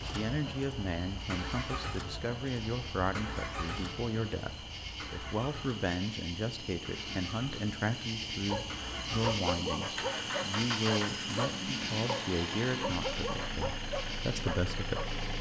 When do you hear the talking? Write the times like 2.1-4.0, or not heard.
0.0-15.2.